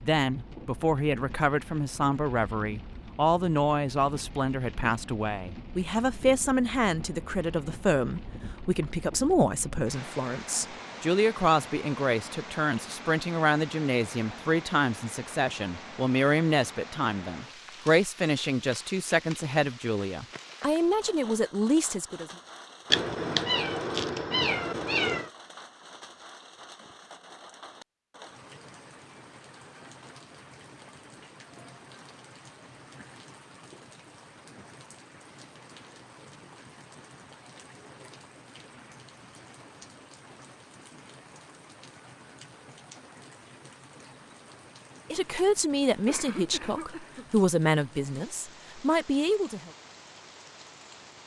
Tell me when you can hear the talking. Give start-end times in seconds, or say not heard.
0.0-22.3, 45.1-49.7.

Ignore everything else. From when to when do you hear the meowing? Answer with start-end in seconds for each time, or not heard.
22.9-25.3.